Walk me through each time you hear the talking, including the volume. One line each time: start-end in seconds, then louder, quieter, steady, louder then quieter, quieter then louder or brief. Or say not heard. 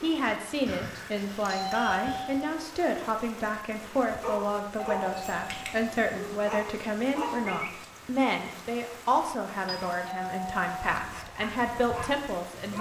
0.0-12.7 steady.